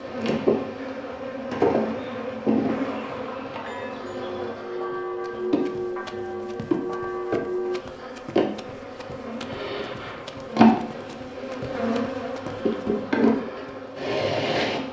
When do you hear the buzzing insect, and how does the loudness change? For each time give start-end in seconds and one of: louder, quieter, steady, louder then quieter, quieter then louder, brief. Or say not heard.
0.0-14.8 quieter then louder.